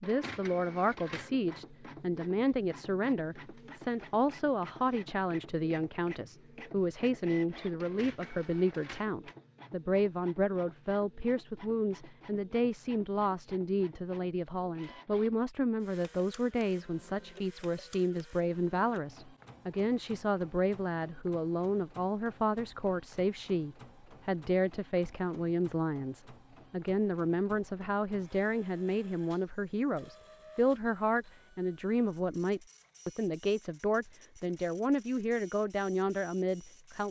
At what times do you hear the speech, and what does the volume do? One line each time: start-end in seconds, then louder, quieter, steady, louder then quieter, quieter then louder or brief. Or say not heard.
0.0-37.0 steady.